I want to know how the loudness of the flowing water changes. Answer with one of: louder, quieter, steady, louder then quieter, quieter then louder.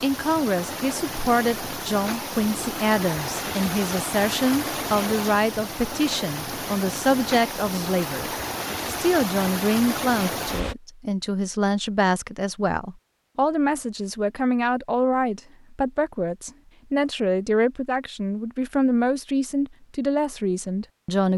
steady.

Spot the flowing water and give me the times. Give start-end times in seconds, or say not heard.
0.0-10.8.